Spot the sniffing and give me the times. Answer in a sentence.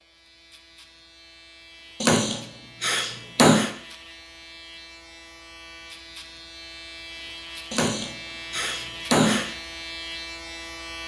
The sniffing can be heard from 2.0 to 3.7 s and from 7.7 to 9.5 s.